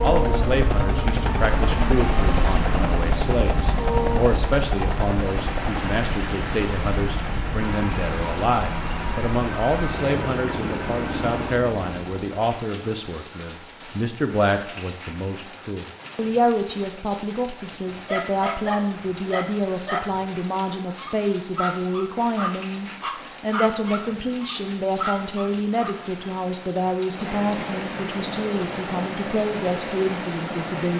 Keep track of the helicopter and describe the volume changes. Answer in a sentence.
The volume of the helicopter goes down.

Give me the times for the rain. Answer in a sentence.
You can hear the rain from 0.0 to 30.9 s.